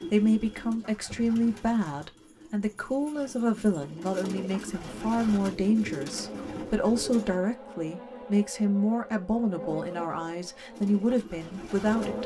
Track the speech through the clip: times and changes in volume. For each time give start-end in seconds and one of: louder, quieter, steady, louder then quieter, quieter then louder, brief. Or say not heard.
0.1-12.2 steady.